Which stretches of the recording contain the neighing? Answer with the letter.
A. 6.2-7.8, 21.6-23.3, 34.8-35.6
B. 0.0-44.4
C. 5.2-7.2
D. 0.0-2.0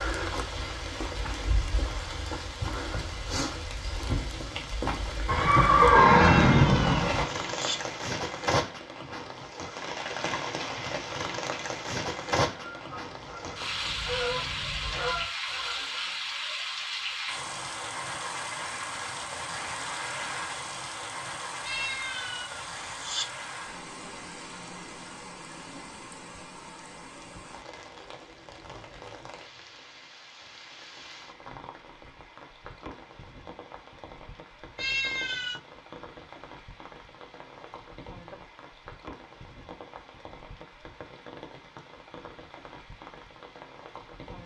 C.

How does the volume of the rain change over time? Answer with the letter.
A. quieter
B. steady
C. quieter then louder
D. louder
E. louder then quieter
A.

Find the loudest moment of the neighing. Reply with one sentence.
The loudest moment of the neighing is at 6 seconds.